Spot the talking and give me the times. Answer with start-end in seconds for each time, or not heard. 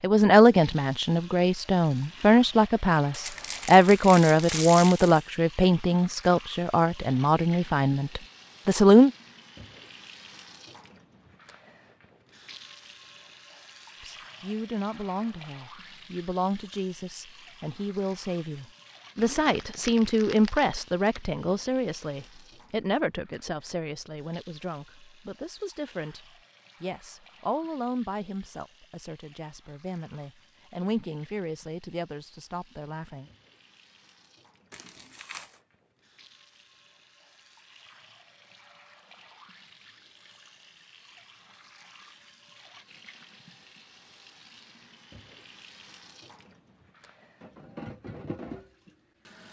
0.0-9.1, 14.0-33.2.